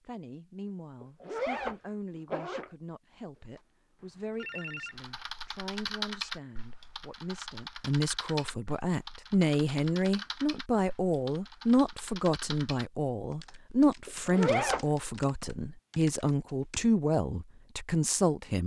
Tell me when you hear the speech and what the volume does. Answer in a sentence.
You can hear the speech from 0.1 to 18.6 s, getting louder.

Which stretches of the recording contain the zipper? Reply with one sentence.
The zipper can be heard from 1.0 to 2.7 s and from 14.1 to 14.8 s.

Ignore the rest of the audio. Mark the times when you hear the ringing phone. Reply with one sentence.
You can hear the ringing phone from 3.4 to 5.2 s.